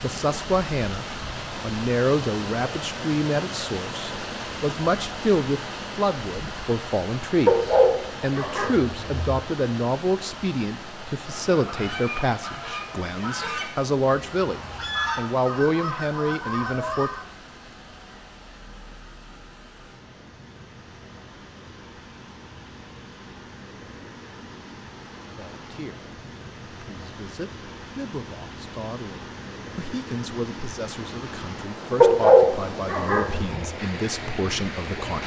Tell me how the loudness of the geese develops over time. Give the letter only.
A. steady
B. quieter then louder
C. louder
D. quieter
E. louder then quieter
B.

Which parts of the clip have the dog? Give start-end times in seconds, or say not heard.
7.5-9.3, 32.0-33.6.